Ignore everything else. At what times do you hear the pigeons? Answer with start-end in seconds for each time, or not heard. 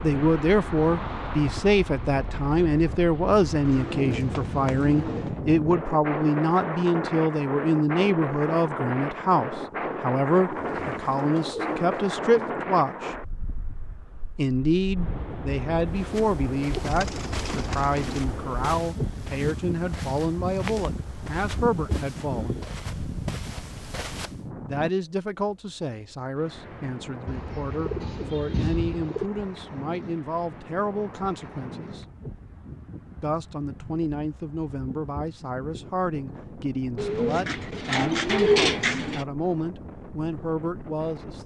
3.6-5.3, 10.5-12.5, 16.7-18.2, 27.2-29.3, 37.0-39.2.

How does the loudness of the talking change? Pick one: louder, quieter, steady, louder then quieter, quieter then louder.
quieter.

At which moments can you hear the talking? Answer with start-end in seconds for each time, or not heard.
0.0-13.2, 14.3-22.6, 24.6-32.0, 33.2-41.4.